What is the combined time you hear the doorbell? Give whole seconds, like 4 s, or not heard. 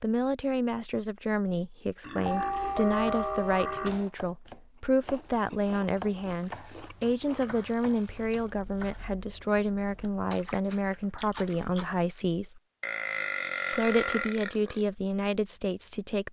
2 s.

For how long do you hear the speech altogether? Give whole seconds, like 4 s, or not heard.
15 s.